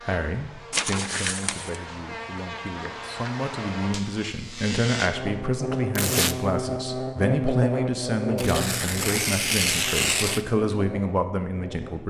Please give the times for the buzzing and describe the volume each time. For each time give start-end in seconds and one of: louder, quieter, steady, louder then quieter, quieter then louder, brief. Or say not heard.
0.0-12.0 louder then quieter.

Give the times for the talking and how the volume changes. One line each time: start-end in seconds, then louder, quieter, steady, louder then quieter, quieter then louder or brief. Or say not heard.
0.0-12.0 louder.